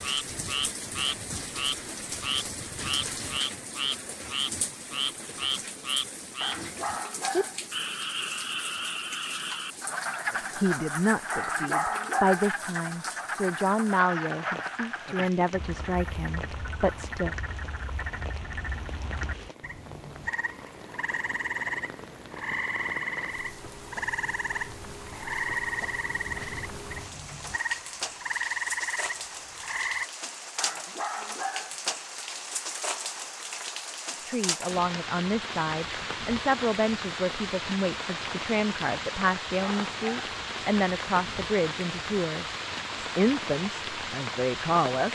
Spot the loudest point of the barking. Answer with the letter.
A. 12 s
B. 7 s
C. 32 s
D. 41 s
A.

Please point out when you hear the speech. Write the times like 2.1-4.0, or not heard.
10.3-17.4, 34.2-45.1.